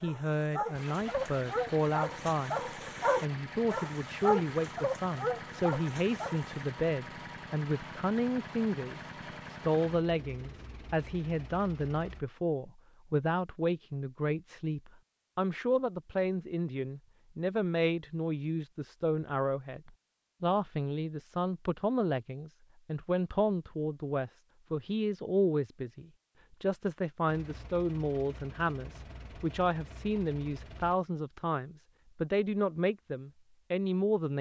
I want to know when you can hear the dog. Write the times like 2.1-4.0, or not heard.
0.0-6.6.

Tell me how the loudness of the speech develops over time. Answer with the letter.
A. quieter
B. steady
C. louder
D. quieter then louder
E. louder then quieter
B.